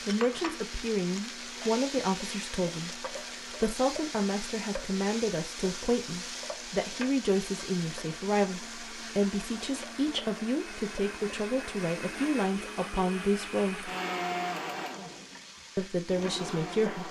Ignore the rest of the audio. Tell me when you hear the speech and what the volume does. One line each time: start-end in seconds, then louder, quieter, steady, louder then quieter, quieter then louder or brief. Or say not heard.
0.1-13.9 steady
15.8-17.0 brief.